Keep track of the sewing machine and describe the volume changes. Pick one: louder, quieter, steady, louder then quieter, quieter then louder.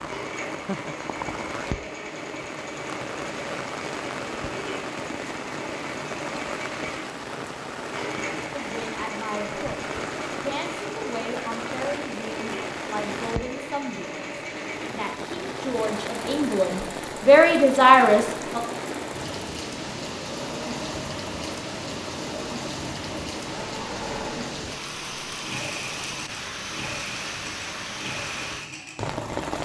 steady.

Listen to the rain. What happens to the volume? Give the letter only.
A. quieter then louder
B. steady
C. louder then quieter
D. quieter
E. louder
B.